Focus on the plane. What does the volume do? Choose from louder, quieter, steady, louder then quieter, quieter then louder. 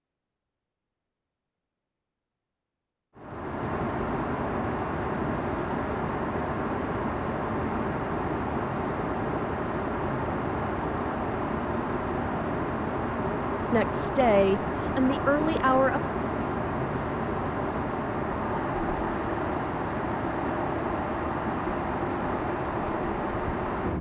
steady.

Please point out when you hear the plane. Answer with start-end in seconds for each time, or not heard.
3.1-23.9.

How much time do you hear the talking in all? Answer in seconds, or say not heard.
2 s.